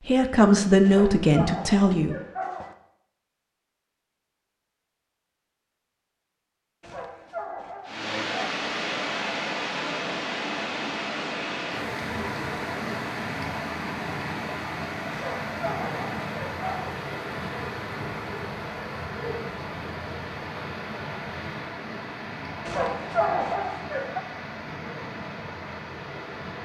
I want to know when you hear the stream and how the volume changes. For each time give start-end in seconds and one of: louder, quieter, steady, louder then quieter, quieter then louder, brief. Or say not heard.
7.8-26.6 quieter.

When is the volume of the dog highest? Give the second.
23 s.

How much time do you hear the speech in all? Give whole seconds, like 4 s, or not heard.
2 s.